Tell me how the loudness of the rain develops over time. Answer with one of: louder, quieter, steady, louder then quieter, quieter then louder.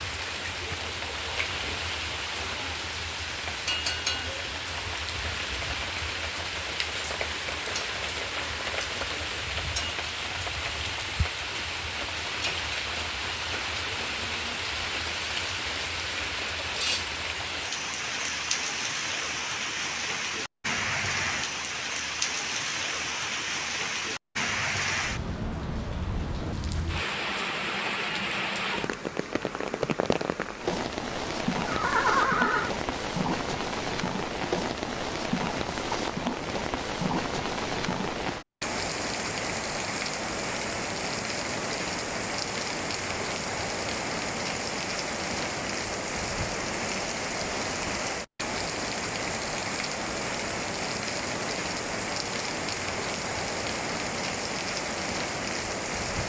steady.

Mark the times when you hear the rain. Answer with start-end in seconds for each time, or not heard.
0.0-56.2.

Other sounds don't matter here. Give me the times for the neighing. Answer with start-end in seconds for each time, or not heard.
31.6-32.7.